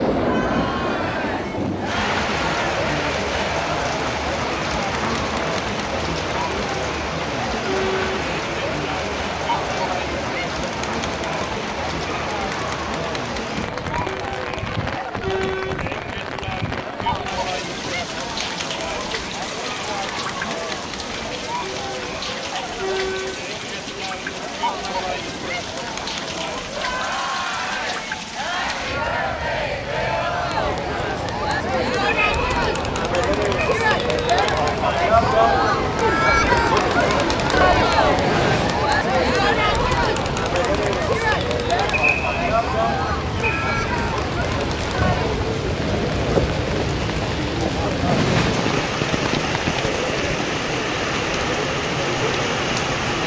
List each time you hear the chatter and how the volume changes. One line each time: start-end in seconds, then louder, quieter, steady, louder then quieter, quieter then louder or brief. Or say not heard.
0.1-53.2 louder then quieter.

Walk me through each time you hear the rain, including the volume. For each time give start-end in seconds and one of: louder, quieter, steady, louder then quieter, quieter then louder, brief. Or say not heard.
0.0-53.2 quieter then louder.